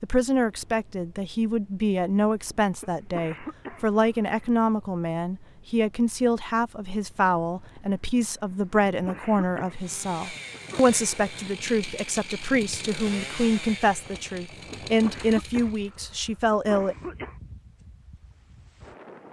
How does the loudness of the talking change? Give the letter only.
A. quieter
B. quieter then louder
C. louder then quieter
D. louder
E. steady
E.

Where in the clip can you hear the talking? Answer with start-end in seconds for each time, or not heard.
0.0-16.9.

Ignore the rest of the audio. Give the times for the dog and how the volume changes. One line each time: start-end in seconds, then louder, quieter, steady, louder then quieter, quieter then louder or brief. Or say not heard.
not heard.